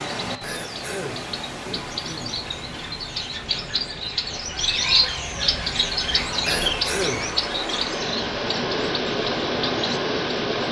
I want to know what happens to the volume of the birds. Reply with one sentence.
The loudness of the birds goes up, then down.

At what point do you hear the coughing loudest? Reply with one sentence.
The loudest moment of the coughing is at 7 seconds.